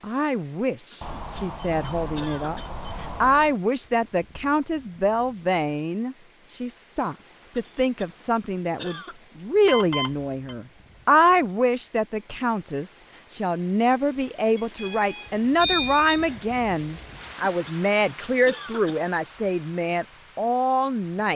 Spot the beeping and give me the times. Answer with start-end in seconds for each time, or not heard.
1.0-3.5, 9.7-10.6, 14.6-16.6.